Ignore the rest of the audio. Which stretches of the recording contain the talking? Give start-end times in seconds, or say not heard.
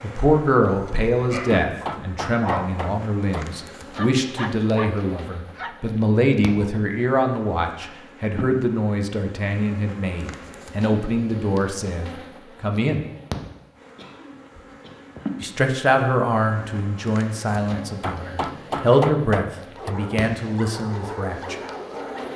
0.0-13.1, 15.4-21.6.